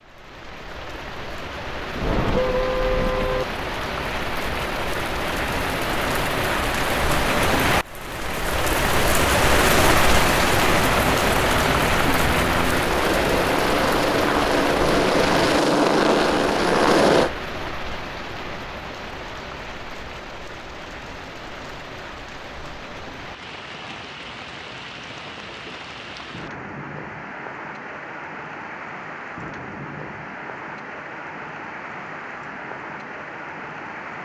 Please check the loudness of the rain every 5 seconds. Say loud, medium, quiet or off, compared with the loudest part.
medium, loud, loud, medium, quiet, quiet, quiet.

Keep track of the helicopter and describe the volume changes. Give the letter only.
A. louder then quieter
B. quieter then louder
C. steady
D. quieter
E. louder
E.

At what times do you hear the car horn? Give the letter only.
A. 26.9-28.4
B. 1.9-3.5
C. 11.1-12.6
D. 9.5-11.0
B.